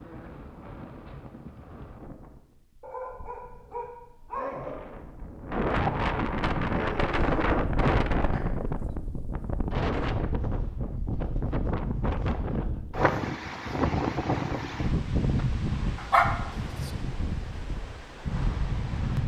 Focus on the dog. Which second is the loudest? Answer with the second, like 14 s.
16 s.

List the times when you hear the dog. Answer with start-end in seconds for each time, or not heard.
2.8-4.7, 6.7-8.4, 15.9-16.9.